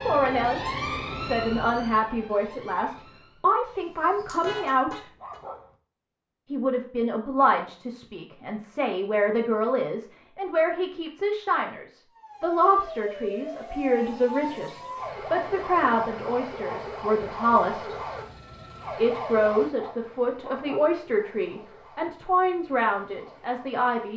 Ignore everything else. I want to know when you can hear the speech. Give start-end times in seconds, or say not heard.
0.0-0.6, 1.2-5.0, 6.5-17.9, 18.9-24.1.